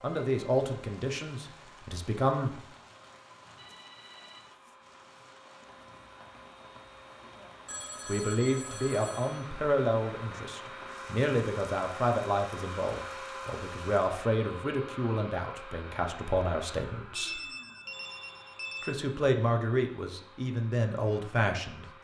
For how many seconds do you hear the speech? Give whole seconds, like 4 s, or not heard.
15 s.